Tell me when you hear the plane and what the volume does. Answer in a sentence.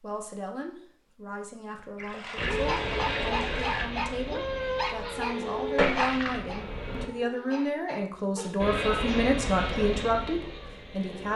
You can hear the plane from 2.4 to 7.1 s, getting quieter; and briefly from 8.6 to 11.3 s.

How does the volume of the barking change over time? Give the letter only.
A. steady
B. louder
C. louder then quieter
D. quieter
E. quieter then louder
D.